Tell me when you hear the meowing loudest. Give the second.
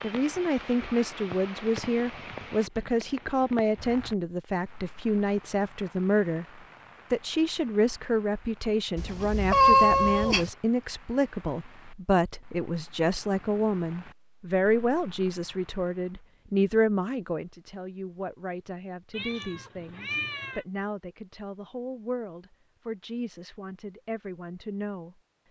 10 s.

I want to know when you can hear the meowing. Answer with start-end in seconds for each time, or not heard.
8.9-10.5, 19.1-20.6.